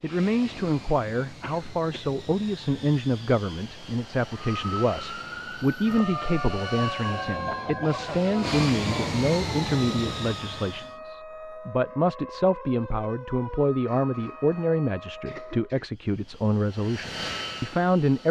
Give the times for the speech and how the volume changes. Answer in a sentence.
The speech can be heard from 0.0 to 18.2 s, at a steady volume.